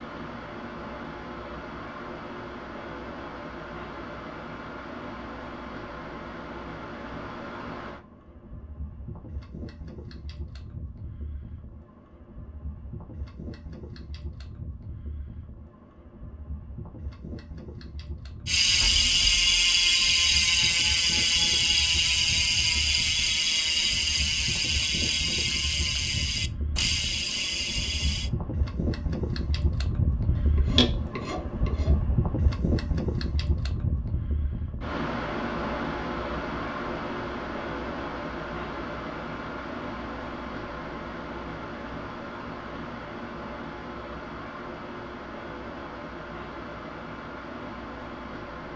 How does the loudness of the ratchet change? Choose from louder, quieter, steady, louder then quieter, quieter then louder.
quieter.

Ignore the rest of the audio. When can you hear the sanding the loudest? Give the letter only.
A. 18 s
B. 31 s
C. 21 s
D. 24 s
B.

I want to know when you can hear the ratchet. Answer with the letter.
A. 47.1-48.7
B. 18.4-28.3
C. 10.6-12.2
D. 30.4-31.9
B.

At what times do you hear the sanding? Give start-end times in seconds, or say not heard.
30.4-31.9.